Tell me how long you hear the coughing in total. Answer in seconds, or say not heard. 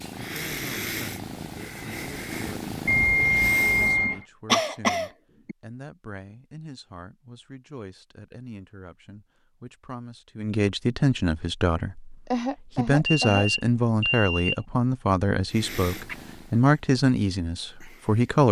3 s.